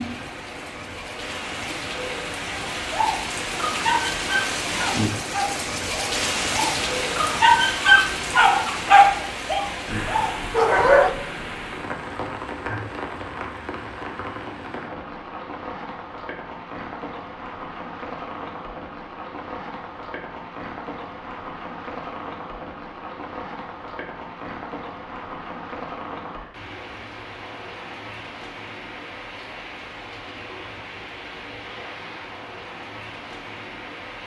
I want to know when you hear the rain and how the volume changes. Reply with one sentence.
The rain can be heard from 0.0 to 34.2 s, getting quieter.